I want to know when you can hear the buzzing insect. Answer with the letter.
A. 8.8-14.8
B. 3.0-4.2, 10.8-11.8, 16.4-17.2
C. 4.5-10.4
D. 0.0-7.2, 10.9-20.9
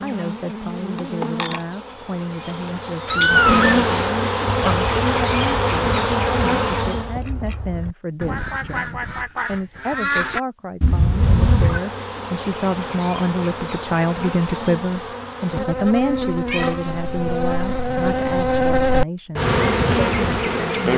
D.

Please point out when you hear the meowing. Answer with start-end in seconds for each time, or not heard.
3.0-4.2, 10.8-11.8, 16.4-17.2.